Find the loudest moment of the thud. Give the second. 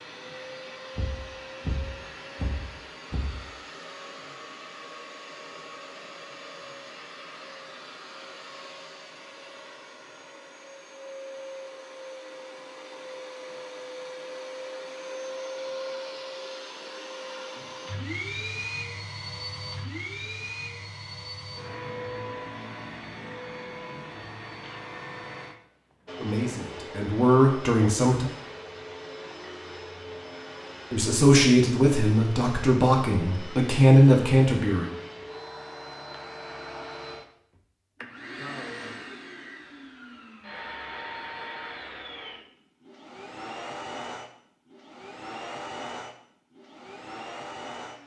2 s.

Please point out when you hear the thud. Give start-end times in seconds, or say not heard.
0.9-3.4.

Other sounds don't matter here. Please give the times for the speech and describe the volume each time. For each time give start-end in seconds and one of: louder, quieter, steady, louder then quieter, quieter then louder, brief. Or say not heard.
26.1-28.3 brief
30.9-34.9 quieter then louder.